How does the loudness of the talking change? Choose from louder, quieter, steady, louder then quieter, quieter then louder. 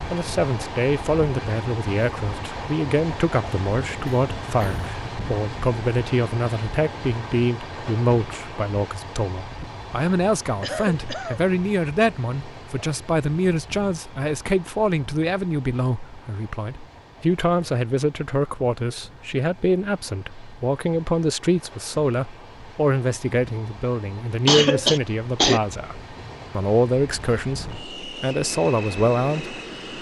steady.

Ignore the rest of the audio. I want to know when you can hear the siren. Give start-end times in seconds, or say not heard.
not heard.